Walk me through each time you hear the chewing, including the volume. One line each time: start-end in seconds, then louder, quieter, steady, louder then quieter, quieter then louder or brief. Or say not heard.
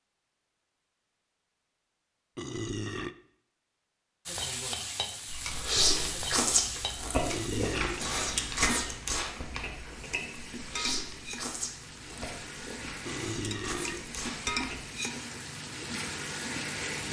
5.2-14.8 quieter.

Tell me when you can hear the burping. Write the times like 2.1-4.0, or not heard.
2.4-3.1, 7.2-8.0, 13.1-14.2.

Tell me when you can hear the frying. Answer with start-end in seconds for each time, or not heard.
4.2-17.0.